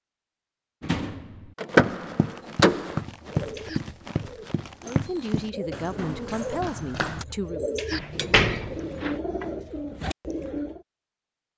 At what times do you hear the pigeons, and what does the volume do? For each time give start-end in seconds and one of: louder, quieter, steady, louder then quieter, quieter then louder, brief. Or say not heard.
3.2-10.8 louder.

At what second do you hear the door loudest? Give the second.
2 s.